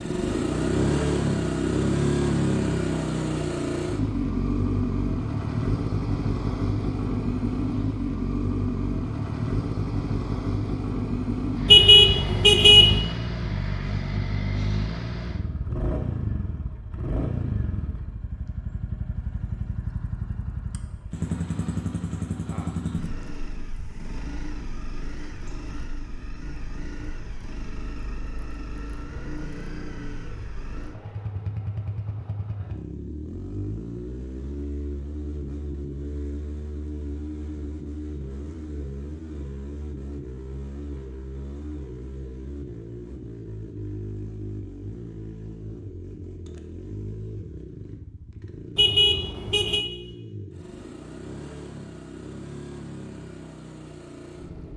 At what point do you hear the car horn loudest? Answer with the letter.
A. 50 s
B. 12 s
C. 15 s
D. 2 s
B.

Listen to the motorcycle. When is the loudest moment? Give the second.
2 s.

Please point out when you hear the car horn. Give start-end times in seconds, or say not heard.
11.7-13.0, 48.8-49.9.